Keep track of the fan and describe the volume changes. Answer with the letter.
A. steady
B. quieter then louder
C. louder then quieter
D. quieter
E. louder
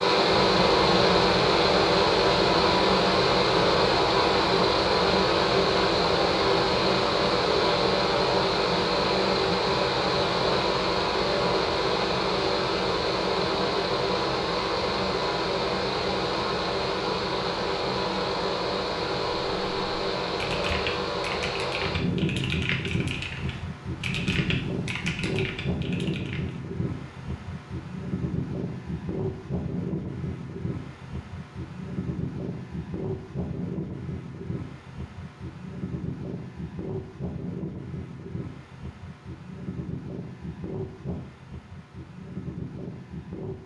D.